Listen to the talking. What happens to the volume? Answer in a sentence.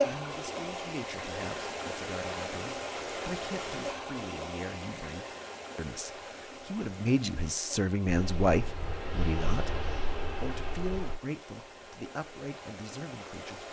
The loudness of the talking goes up, then down.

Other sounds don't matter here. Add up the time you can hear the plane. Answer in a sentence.
The plane can be heard for 3 seconds in total.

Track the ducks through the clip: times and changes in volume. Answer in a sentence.
The ducks can't be heard in this clip.